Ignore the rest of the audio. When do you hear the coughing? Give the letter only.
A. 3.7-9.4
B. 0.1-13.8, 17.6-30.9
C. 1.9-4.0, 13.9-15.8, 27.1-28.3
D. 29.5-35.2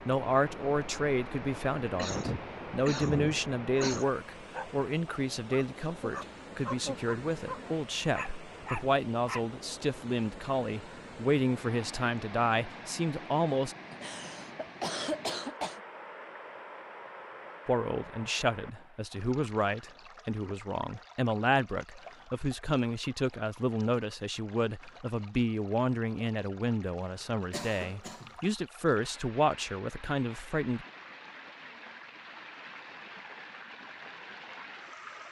C.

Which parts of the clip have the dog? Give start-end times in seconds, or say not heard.
3.7-9.4.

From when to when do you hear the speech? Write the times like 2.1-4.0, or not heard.
0.1-13.8, 17.6-30.9.